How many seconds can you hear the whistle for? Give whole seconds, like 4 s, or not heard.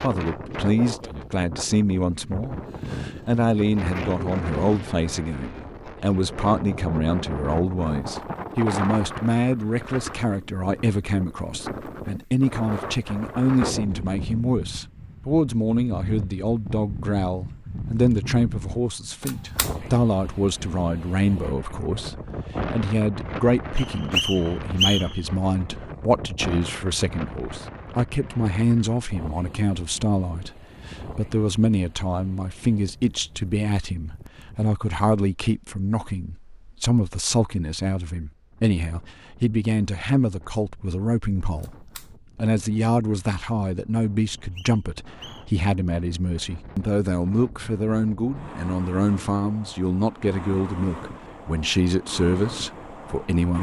3 s.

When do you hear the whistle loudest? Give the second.
25 s.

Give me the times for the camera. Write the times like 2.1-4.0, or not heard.
19.2-19.8, 41.5-42.1.